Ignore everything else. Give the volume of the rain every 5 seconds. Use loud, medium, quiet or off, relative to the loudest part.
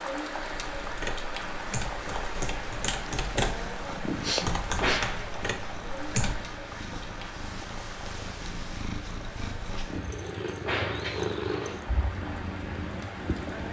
loud, medium, loud.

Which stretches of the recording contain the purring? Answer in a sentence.
The purring can be heard from 0.0 to 13.6 s.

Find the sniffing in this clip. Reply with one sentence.
You can hear the sniffing from 4.2 to 5.0 s.